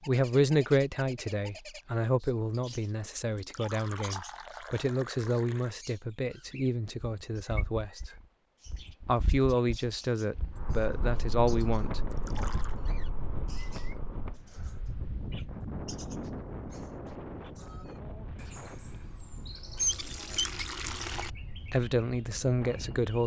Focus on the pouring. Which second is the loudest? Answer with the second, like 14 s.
20 s.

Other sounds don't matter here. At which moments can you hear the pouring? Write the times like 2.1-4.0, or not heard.
3.4-5.8, 12.1-12.8, 19.8-21.3.